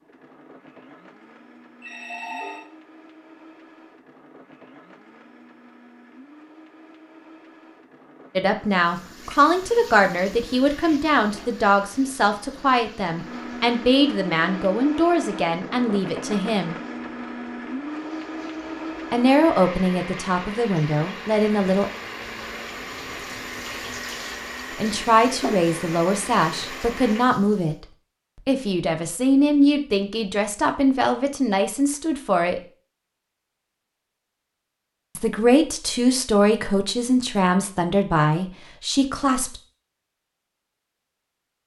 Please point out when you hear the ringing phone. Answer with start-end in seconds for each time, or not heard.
1.8-2.7.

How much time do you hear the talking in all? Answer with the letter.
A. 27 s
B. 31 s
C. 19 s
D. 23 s
D.